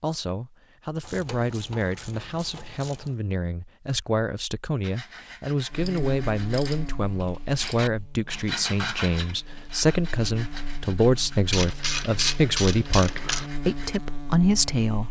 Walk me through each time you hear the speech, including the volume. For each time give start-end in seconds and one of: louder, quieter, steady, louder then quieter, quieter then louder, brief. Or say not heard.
0.0-15.0 louder.